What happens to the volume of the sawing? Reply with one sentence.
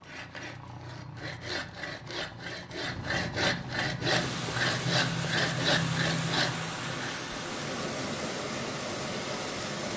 The volume of the sawing goes up.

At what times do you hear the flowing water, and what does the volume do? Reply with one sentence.
You can hear the flowing water from 4.1 to 9.9 s, at a steady volume.